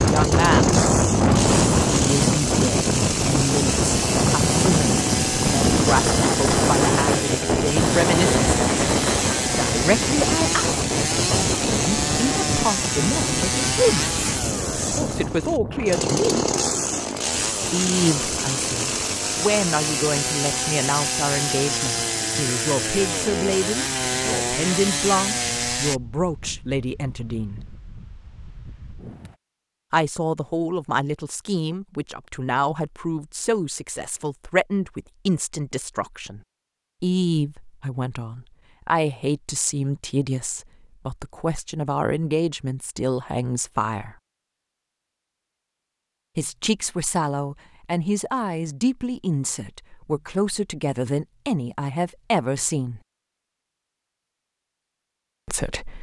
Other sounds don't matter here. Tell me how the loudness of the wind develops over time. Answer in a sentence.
The volume of the wind goes down.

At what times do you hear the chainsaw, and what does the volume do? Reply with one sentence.
You can hear the chainsaw from 0.0 to 26.0 s, at a steady volume.